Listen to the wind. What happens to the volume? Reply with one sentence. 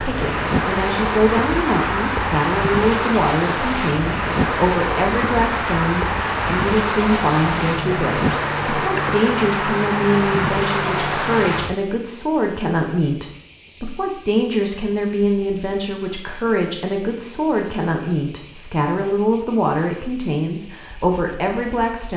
The loudness of the wind stays about the same.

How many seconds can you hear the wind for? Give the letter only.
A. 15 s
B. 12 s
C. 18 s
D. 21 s
B.